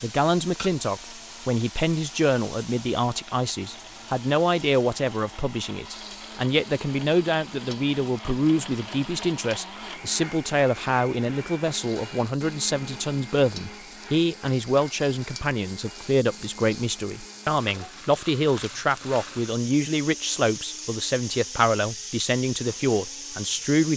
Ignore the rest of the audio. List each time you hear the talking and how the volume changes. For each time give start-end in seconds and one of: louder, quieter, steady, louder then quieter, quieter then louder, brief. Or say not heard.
0.0-23.9 steady.